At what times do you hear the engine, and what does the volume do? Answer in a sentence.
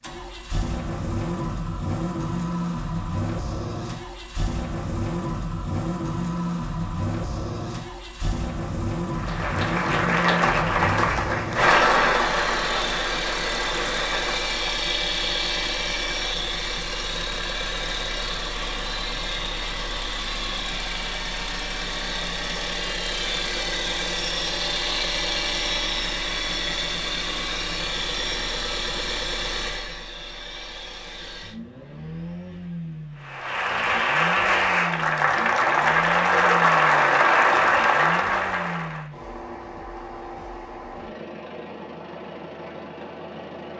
The engine can be heard from 0.0 to 43.7 s, getting quieter.